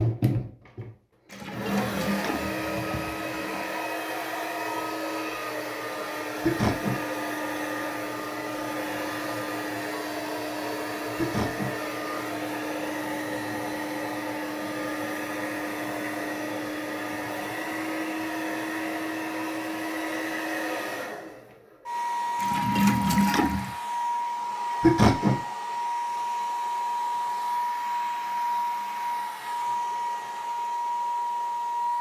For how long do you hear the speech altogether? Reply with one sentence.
You can't hear the speech here.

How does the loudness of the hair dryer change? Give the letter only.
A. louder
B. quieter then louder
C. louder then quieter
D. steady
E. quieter
D.